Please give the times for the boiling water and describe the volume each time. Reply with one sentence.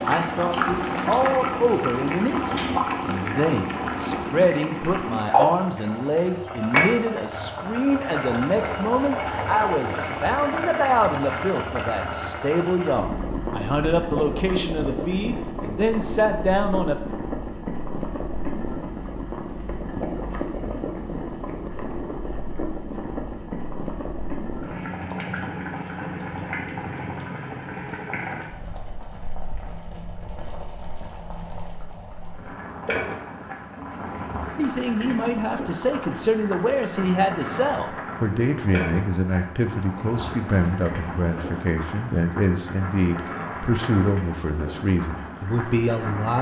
The boiling water can be heard from 0.0 to 46.3 s, getting quieter.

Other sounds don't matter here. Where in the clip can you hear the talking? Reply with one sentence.
The talking can be heard from 0.0 to 17.0 s and from 34.5 to 46.3 s.